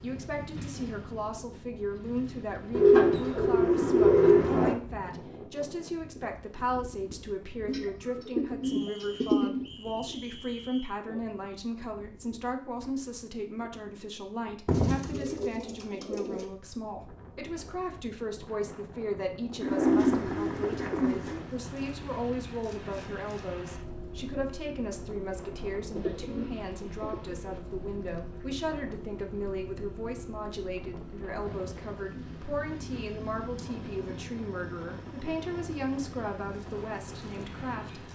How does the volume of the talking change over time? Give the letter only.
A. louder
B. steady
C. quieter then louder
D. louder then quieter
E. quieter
B.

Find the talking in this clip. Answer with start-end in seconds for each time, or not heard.
0.0-38.0.